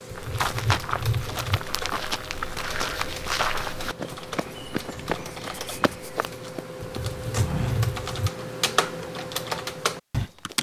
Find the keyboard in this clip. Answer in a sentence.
You can hear the keyboard from 0.0 to 10.5 s.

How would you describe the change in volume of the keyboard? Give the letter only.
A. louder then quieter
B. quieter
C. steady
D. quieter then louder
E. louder
E.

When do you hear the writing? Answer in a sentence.
The writing can be heard from 0.1 to 1.6 s and from 6.8 to 8.3 s.